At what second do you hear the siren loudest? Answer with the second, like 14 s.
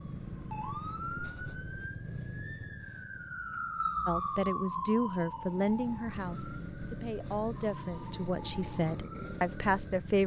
4 s.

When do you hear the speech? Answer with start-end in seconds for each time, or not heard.
4.0-10.2.